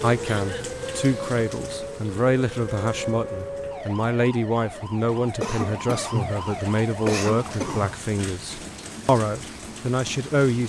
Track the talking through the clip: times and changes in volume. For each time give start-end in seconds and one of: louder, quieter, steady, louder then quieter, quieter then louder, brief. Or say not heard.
0.0-10.6 steady.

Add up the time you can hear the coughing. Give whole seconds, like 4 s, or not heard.
3 s.